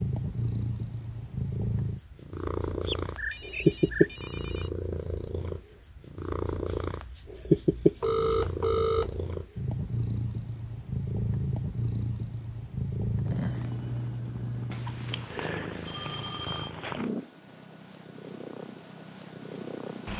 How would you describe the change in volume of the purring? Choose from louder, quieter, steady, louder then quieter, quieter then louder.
quieter.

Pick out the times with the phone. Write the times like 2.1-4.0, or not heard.
2.9-4.7, 8.0-9.2, 14.7-16.8.